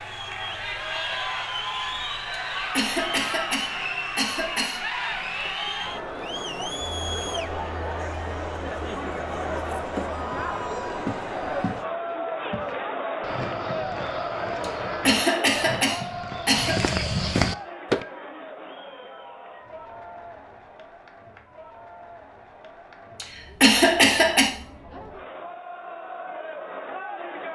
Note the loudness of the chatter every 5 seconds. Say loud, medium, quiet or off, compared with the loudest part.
loud, loud, loud, medium, quiet, medium.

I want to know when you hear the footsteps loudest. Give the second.
17 s.